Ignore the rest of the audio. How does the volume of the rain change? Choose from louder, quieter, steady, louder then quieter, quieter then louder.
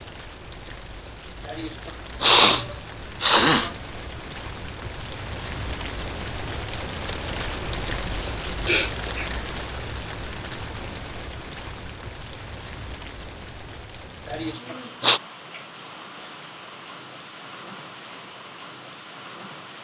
louder then quieter.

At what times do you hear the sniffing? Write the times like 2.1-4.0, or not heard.
1.4-3.8, 8.1-9.3, 14.2-15.2.